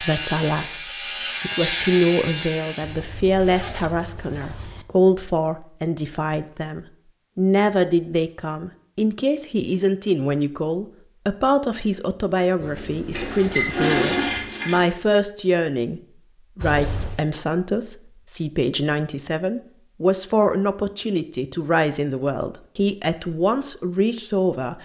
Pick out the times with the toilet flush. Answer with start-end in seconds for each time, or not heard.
12.6-14.8.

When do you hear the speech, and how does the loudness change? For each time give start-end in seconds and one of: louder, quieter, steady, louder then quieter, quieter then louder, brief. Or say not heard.
0.0-24.8 steady.